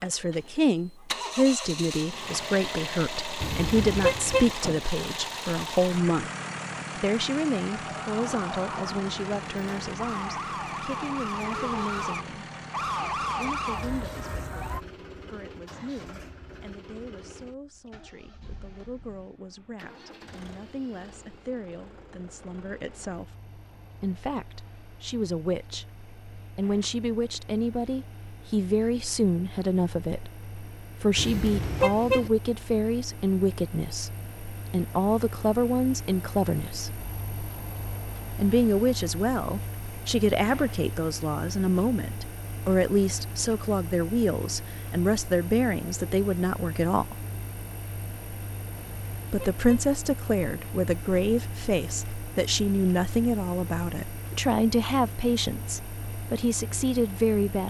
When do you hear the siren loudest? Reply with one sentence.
The loudest moment of the siren is at 13 seconds.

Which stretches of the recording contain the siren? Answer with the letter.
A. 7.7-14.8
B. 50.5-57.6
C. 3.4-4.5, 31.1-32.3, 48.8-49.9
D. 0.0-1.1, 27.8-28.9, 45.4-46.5
A.